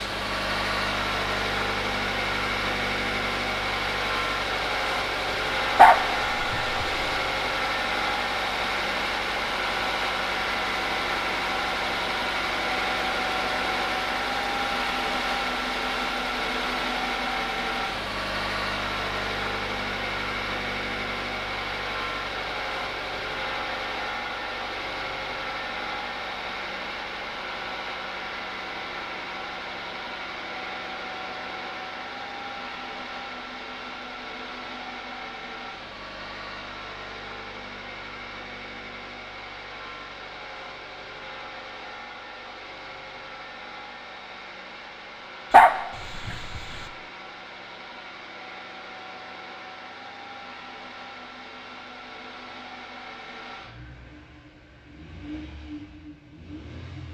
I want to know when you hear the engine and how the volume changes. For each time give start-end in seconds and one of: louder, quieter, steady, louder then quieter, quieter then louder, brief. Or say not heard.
0.0-57.0 quieter.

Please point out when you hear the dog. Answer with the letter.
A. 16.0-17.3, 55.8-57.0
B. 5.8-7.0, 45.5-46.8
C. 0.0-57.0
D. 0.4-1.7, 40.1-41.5
B.